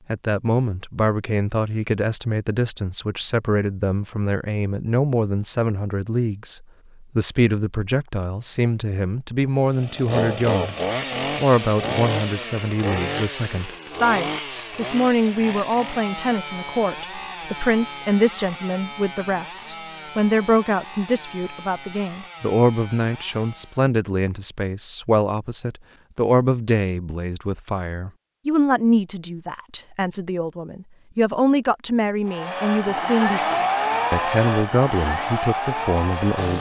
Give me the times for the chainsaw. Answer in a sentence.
You can hear the chainsaw from 9.7 to 23.9 s and from 32.2 to 36.5 s.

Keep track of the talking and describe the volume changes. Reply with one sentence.
The volume of the talking stays about the same.